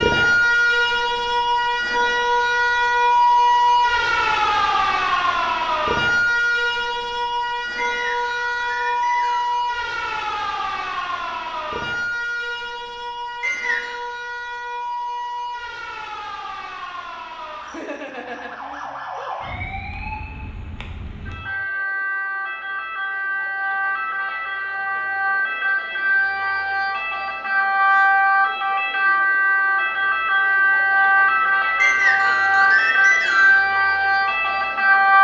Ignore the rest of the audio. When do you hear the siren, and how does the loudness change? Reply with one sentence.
The siren can be heard from 0.0 to 35.1 s, getting quieter then louder.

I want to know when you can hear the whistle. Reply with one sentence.
You can hear the whistle from 7.8 to 9.5 s, from 13.4 to 14.0 s and from 31.8 to 33.6 s.